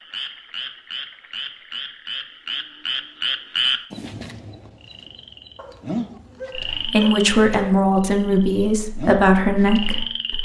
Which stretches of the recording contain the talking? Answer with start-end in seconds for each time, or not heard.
6.5-10.4.